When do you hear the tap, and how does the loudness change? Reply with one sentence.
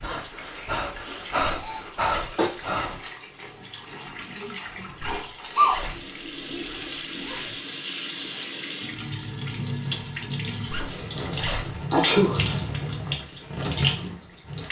The tap can be heard from 0.0 to 14.6 s, getting louder.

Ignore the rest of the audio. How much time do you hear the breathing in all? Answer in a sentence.
The breathing can be heard for 3 seconds in total.